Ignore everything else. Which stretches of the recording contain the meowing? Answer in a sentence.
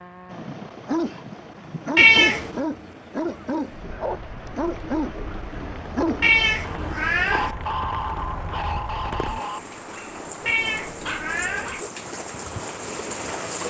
You can hear the meowing from 1.9 to 2.6 s, from 6.2 to 7.5 s and from 10.4 to 11.8 s.